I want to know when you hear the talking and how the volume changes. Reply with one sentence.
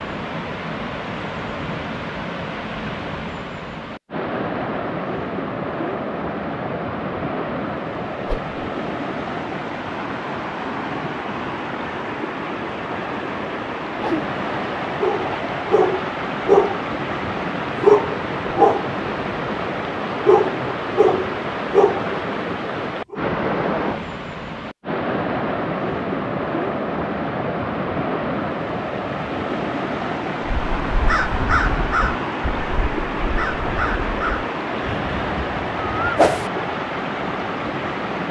You can't hear the talking here.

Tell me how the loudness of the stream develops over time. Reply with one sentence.
The loudness of the stream stays about the same.